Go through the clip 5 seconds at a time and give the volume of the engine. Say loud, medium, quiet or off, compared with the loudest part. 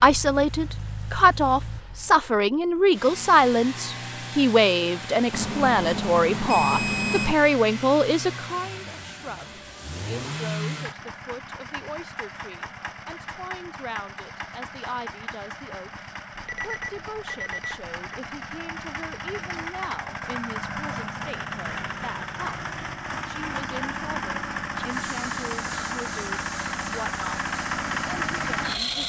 medium, medium, medium, medium, loud, loud.